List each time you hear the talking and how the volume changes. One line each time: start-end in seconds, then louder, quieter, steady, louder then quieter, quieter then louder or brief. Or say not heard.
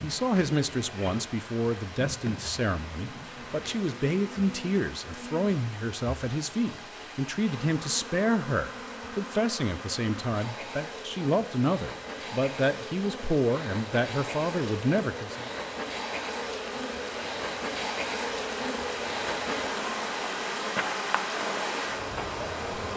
0.0-15.5 steady.